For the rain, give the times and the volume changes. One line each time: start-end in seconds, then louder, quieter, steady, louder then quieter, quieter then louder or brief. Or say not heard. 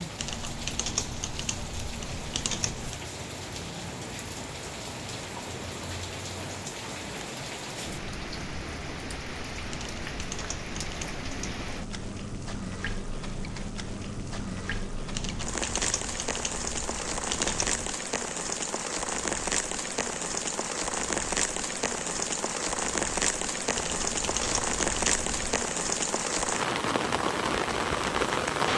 0.0-28.7 louder.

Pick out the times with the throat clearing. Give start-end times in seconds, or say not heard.
not heard.